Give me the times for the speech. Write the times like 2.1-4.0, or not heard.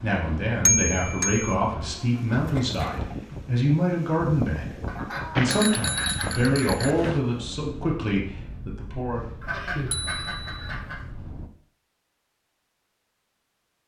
0.0-9.3.